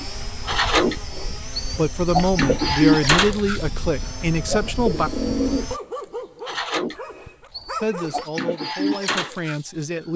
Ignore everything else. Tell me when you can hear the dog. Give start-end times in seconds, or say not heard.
5.7-8.2.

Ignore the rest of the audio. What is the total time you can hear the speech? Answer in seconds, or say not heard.
6 s.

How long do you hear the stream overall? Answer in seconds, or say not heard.
not heard.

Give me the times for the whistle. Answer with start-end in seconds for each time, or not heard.
not heard.